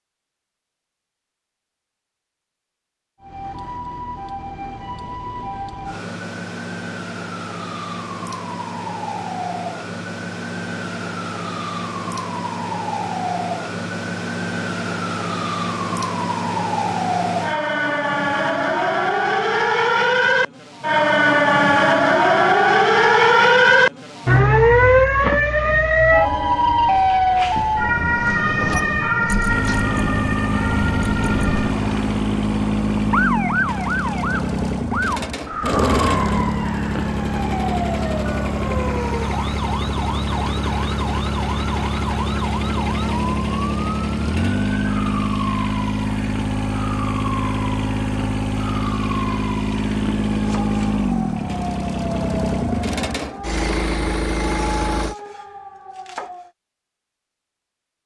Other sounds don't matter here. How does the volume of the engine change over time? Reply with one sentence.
The volume of the engine stays about the same.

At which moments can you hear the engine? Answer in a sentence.
The engine can be heard from 29.4 to 55.1 s.